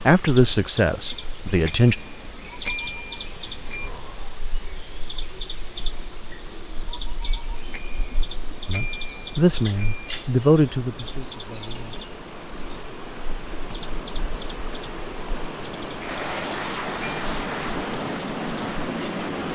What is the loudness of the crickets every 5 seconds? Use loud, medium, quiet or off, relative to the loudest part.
loud, loud, medium, quiet.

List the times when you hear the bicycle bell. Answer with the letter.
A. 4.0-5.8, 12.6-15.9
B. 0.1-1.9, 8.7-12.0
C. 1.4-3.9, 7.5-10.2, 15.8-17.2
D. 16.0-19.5
C.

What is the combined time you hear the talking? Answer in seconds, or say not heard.
5 s.